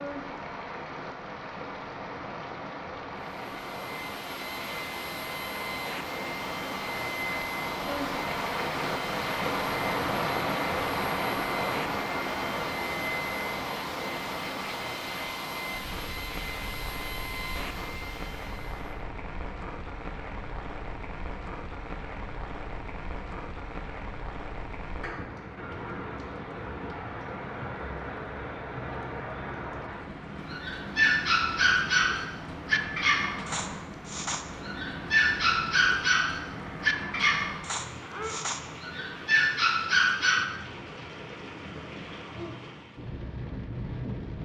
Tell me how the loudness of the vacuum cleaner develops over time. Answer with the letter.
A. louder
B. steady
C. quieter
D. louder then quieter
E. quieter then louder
B.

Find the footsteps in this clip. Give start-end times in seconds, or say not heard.
not heard.